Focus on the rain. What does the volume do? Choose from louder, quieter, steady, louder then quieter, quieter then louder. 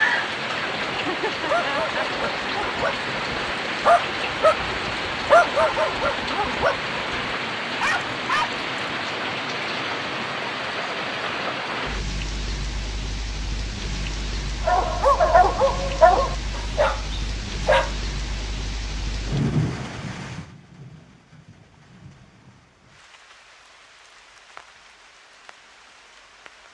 quieter.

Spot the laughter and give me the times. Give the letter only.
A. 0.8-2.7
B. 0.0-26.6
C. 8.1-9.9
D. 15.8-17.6
A.